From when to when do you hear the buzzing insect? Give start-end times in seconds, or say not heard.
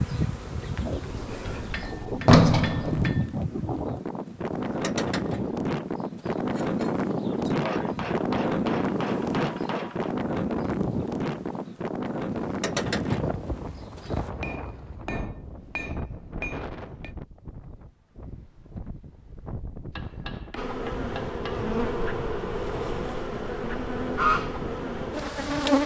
0.0-14.3, 20.6-25.8.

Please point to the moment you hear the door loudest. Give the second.
2 s.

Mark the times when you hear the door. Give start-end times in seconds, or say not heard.
1.1-3.1.